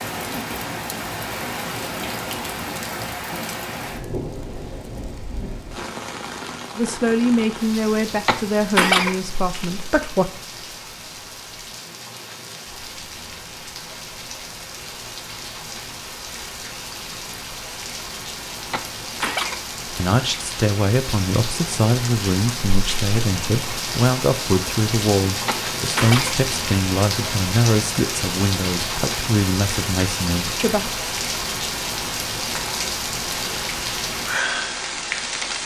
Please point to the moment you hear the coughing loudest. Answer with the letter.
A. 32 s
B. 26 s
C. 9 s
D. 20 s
C.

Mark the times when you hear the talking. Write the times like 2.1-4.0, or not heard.
6.8-10.3, 19.9-30.9.